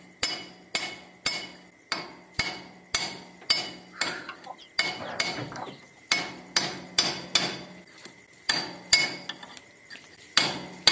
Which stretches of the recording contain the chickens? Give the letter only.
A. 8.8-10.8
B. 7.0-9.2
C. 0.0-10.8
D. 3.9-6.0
D.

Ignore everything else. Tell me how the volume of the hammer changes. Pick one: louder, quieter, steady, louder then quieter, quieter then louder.
louder.